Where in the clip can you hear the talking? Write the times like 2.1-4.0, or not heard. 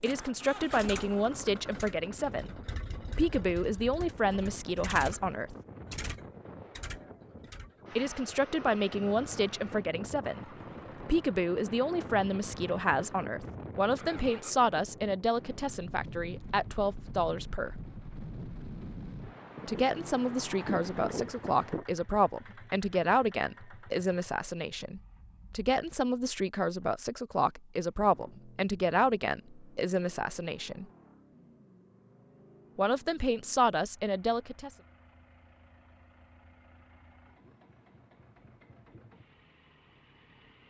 0.0-5.5, 8.0-17.8, 19.6-30.9, 32.8-34.7.